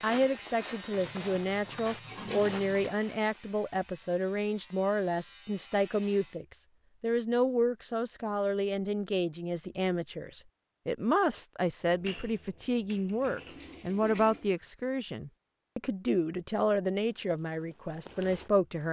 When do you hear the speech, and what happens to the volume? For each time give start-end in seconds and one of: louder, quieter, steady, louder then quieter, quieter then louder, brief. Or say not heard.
0.0-18.8 steady.